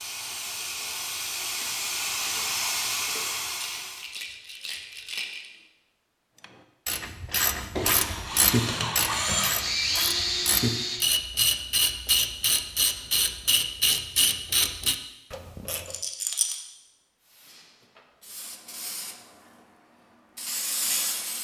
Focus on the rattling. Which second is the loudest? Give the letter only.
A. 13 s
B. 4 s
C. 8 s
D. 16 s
D.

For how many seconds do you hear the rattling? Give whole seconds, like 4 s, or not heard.
3 s.